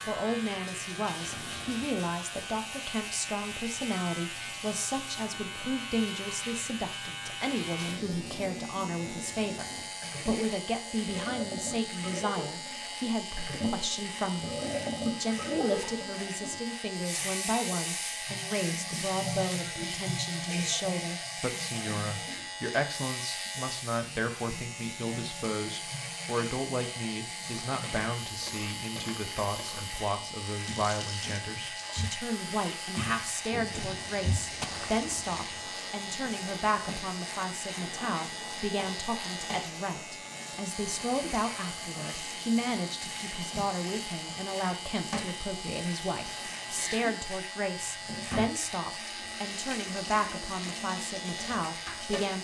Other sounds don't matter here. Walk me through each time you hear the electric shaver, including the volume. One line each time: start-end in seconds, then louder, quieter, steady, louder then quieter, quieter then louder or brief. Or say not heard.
0.0-52.3 steady.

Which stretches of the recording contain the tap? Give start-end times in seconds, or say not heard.
0.0-52.3.